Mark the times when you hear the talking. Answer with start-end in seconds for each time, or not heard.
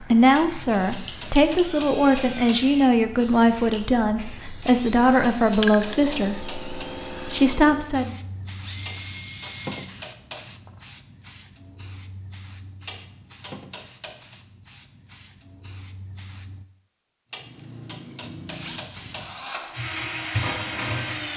0.0-8.2.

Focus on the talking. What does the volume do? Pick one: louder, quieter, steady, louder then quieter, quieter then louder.
steady.